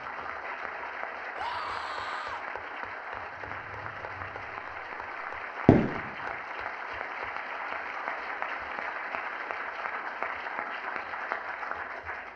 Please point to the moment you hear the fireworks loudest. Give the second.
6 s.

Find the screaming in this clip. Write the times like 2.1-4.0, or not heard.
1.4-2.5.